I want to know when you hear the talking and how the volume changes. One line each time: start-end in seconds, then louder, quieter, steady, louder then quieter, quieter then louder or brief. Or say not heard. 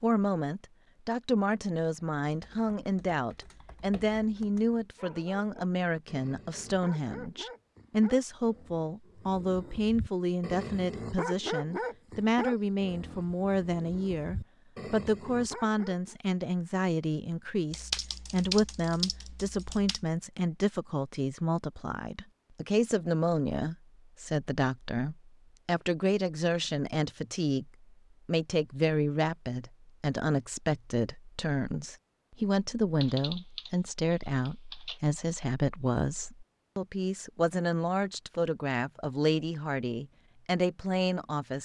0.0-41.6 steady.